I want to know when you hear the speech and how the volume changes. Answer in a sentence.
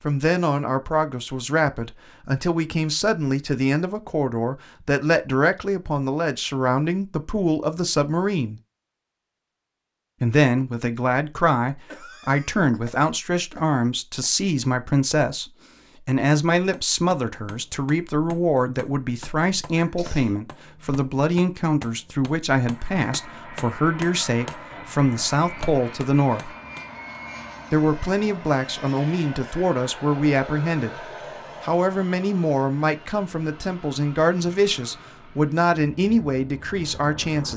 The speech can be heard from 0.0 to 8.6 s, at a steady volume; from 10.2 to 26.6 s, at a steady volume; and from 27.7 to 37.5 s, at a steady volume.